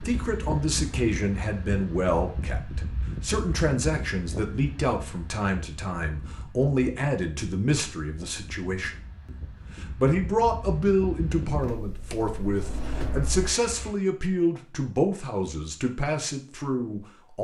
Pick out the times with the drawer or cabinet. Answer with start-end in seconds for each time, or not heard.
12.1-13.3.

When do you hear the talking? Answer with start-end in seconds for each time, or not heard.
0.0-17.3.